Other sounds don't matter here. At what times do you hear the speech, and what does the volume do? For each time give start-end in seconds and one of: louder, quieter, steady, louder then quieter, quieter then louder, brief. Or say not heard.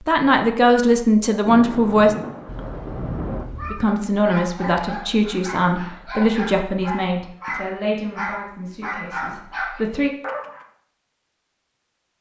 0.1-2.1 brief
3.7-10.1 quieter.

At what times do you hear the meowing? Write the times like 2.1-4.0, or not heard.
2.5-3.9.